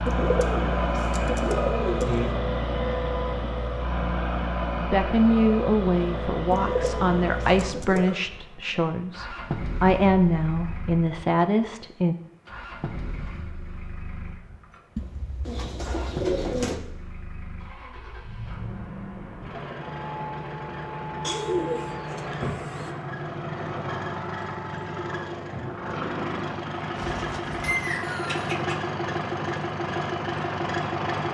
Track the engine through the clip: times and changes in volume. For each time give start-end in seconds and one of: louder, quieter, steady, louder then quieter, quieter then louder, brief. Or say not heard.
0.0-31.2 quieter then louder.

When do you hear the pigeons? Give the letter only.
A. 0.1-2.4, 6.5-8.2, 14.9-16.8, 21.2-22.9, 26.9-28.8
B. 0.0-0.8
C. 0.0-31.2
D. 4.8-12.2
A.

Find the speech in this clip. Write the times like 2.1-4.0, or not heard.
4.8-12.2.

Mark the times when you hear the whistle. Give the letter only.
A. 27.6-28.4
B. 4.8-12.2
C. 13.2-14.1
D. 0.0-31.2
A.